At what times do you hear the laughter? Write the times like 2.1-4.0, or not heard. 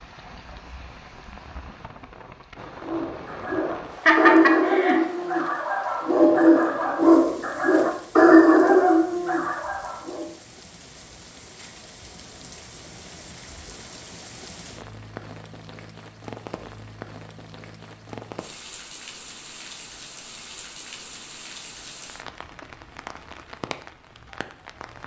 4.0-5.0.